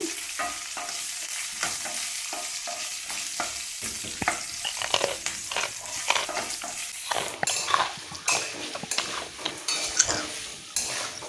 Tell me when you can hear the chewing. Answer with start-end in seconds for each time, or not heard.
4.0-11.2.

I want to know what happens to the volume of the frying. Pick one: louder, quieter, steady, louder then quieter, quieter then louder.
steady.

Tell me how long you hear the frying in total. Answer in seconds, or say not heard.
11 s.